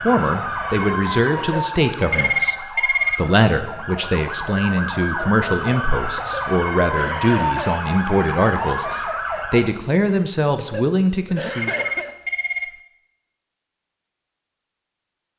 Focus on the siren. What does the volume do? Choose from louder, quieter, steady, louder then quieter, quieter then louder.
quieter then louder.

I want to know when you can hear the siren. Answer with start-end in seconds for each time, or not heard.
0.0-9.7.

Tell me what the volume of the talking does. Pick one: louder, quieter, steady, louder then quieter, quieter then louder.
steady.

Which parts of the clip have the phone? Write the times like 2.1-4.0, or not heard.
2.1-3.3, 11.7-12.8.